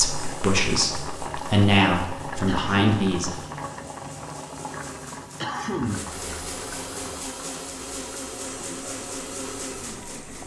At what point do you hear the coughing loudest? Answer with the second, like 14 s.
6 s.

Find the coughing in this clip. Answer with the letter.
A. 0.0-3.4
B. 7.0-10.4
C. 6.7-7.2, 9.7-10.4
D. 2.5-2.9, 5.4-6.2
D.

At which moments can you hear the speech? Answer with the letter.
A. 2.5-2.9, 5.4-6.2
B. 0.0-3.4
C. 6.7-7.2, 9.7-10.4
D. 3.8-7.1
B.